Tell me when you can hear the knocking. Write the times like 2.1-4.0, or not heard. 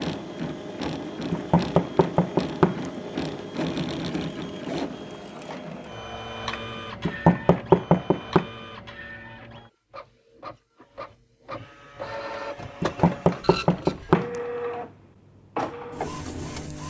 1.3-2.9, 7.0-8.4, 12.8-14.3.